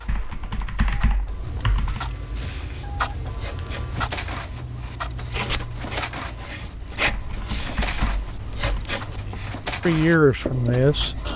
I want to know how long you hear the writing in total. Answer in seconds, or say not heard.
9 s.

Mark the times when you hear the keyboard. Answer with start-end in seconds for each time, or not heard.
0.1-2.0, 7.0-8.9.